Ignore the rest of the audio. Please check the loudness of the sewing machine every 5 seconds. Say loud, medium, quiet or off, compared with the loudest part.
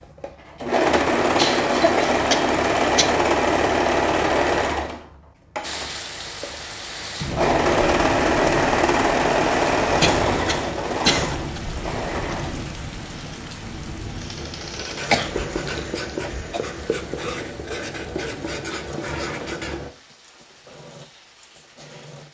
loud, loud, medium, quiet, quiet.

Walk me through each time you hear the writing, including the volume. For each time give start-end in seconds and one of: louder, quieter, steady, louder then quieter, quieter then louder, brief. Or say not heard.
14.3-19.9 steady.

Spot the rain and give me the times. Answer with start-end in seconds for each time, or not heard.
5.6-22.3.